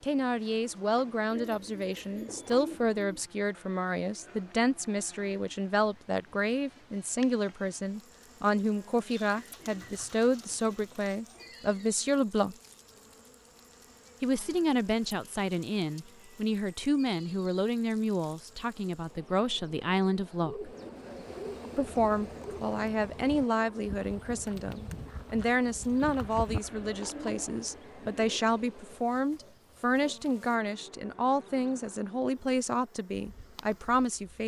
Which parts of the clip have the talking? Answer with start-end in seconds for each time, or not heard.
0.0-12.6, 14.2-20.7, 21.8-34.4.